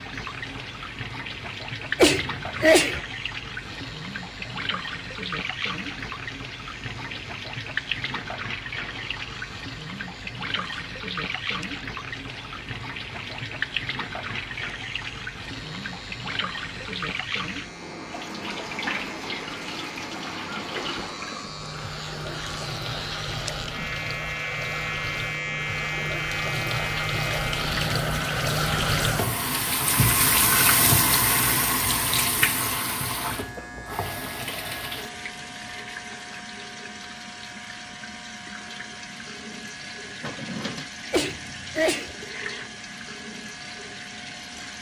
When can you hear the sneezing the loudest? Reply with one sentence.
The loudest moment of the sneezing is at 3 seconds.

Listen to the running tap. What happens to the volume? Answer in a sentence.
The volume of the running tap goes up, then down.